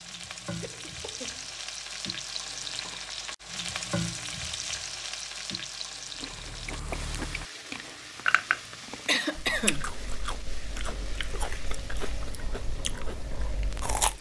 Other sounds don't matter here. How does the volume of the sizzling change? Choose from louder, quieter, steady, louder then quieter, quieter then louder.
quieter.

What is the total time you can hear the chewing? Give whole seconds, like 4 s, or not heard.
8 s.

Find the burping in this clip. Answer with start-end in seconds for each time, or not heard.
not heard.